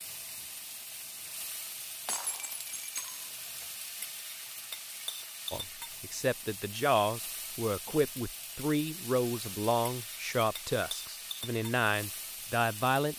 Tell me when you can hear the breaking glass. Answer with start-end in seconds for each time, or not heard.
2.0-3.3.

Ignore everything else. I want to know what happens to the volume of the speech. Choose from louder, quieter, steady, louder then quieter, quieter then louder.
steady.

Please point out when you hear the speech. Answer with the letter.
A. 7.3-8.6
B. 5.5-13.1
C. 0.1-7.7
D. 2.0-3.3
B.